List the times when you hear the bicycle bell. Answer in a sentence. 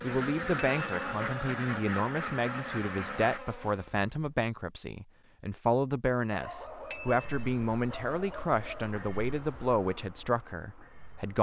The bicycle bell can be heard from 0.6 to 1.1 s and from 6.9 to 7.5 s.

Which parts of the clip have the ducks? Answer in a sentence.
The ducks can be heard from 0.0 to 3.4 s.